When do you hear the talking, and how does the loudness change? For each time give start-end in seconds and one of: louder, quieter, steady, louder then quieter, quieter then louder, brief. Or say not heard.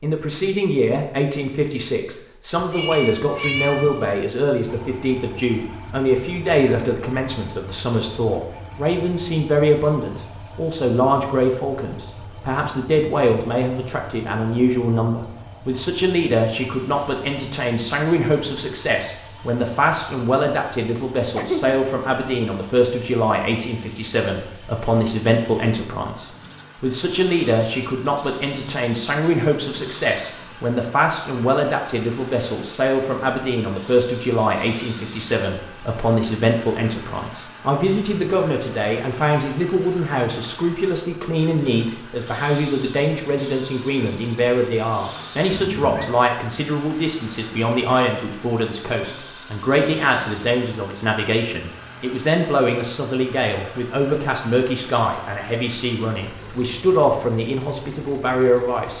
0.0-58.9 steady.